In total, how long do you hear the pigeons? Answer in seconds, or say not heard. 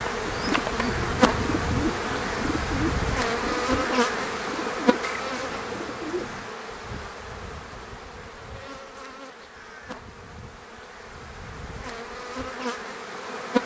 6 s.